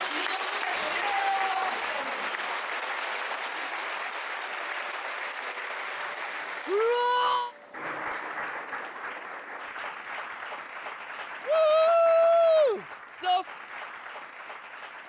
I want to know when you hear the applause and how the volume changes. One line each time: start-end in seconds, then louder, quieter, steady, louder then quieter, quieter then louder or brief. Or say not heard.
0.0-15.0 quieter.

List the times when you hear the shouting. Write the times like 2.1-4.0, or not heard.
0.8-2.0, 6.7-7.5, 11.4-13.4.